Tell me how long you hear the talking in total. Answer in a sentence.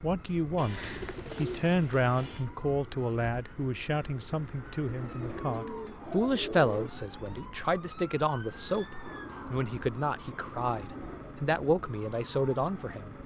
The talking can be heard for 13 seconds in total.